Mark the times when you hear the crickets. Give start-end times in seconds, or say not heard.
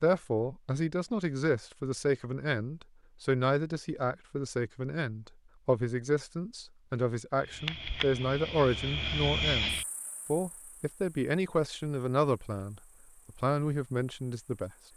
7.3-14.9.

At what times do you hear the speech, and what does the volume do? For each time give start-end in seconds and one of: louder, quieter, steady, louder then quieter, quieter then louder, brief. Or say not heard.
0.0-14.7 steady.